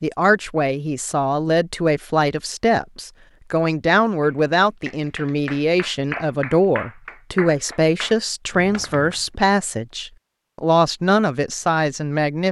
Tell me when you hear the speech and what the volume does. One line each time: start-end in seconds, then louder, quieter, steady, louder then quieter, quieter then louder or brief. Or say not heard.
0.0-12.4 steady.